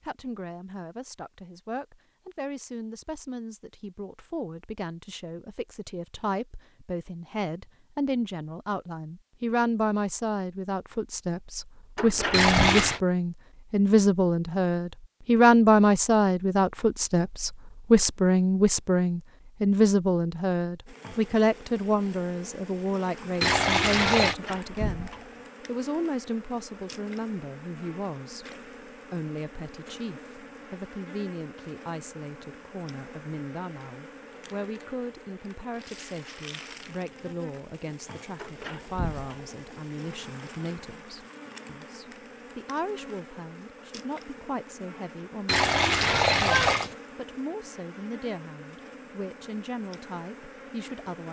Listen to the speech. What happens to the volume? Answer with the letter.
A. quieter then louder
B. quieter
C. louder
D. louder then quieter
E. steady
D.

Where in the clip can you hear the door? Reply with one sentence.
The door can be heard from 11.9 to 12.7 s, from 24.2 to 25.3 s and from 38.4 to 39.5 s.